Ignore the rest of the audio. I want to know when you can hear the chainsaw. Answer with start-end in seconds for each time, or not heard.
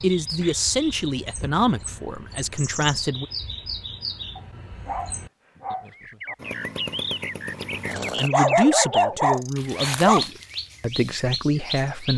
6.3-8.3.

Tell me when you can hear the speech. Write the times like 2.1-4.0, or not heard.
0.0-3.2, 7.9-12.1.